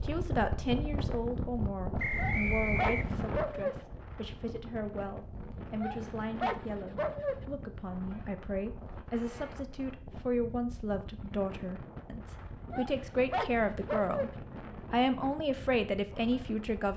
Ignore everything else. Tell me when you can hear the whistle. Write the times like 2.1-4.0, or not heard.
1.9-3.2.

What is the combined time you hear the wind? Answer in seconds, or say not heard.
17 s.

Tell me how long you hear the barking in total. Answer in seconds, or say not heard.
5 s.